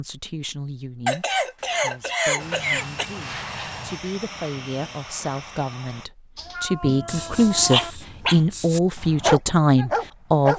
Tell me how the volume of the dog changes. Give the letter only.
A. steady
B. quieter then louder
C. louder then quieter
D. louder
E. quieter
D.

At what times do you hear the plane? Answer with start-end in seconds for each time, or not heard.
2.4-6.1.